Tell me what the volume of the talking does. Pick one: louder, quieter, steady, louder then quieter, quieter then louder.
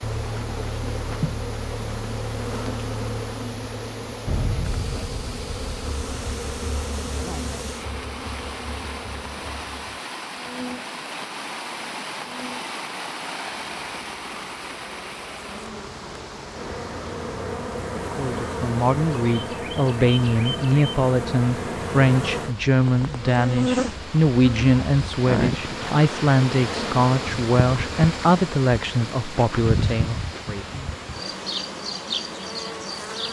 steady.